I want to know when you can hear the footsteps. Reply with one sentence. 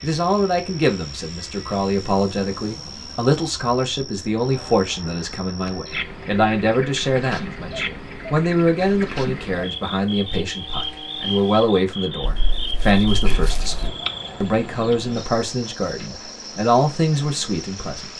The footsteps can't be heard in this clip.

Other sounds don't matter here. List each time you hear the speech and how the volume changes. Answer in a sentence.
You can hear the speech from 0.0 to 18.1 s, at a steady volume.